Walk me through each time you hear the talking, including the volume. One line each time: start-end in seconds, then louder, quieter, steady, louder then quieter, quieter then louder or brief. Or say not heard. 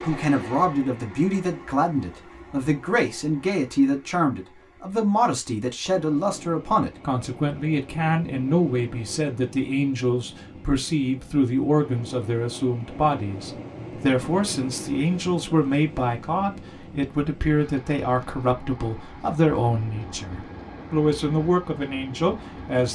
0.1-22.9 steady.